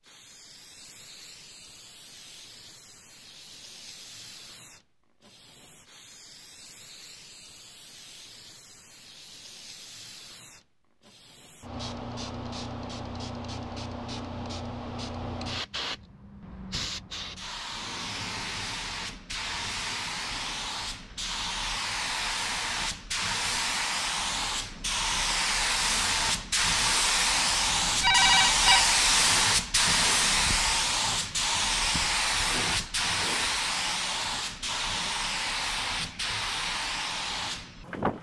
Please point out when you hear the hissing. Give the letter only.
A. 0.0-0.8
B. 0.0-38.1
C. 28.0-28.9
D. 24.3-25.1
B.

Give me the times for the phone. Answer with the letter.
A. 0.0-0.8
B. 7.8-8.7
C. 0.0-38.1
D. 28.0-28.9
D.